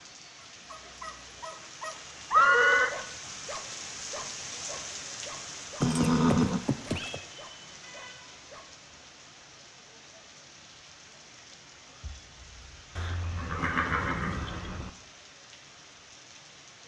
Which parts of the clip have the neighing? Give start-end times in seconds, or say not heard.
2.3-3.0, 5.8-7.2, 12.9-14.9.